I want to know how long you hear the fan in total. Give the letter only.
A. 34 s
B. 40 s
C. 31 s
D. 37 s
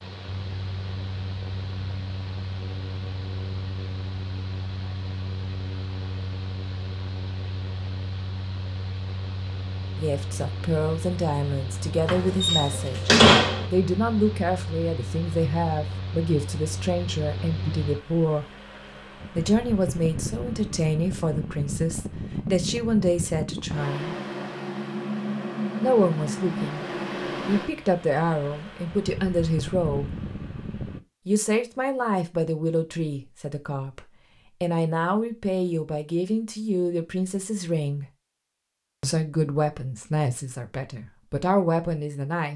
C.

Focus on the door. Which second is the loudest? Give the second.
13 s.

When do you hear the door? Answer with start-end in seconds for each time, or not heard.
12.1-13.7.